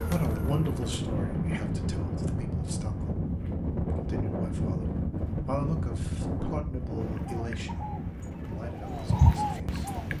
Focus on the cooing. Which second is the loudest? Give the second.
9 s.